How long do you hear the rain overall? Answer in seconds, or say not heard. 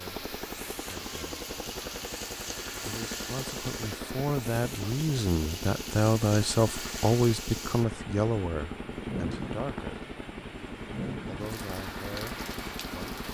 13 s.